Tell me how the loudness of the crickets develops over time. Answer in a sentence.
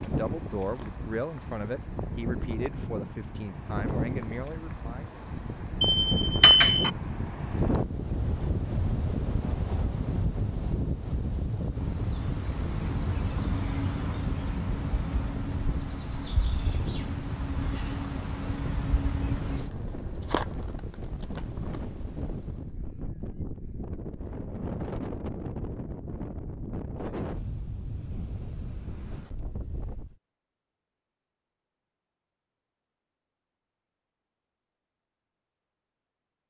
The volume of the crickets goes up.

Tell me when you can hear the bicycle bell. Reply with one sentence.
The bicycle bell can be heard from 5.8 to 6.9 s.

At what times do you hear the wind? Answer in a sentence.
You can hear the wind from 0.0 to 30.1 s.